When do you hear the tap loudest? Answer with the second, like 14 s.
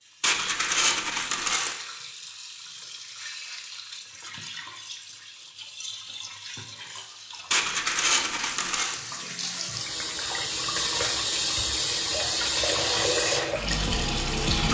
13 s.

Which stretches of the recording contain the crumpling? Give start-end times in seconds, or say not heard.
0.2-1.8, 7.5-9.0.